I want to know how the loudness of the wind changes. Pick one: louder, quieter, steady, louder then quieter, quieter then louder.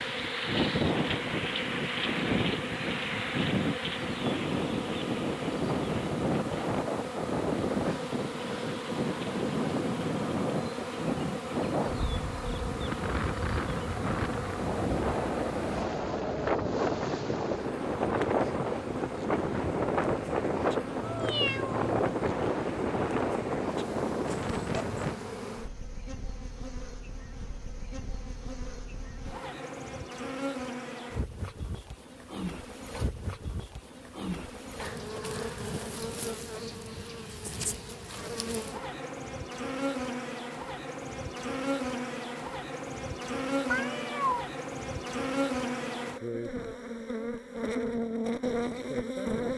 steady.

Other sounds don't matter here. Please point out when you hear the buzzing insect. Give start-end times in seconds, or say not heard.
0.0-49.5.